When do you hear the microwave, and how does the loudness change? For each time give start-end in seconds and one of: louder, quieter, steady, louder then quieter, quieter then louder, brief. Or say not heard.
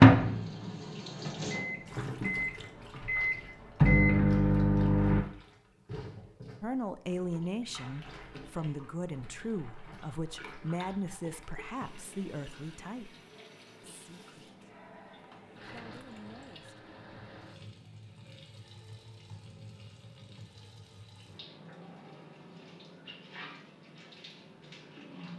0.0-5.2 louder.